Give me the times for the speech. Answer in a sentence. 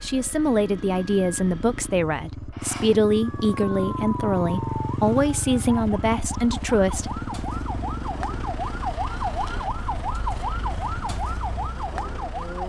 You can hear the speech from 0.0 to 7.2 s.